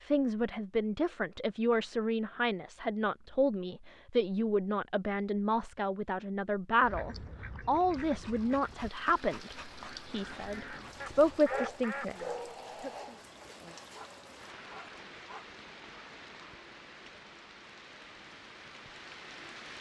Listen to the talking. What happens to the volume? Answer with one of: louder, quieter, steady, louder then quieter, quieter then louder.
steady.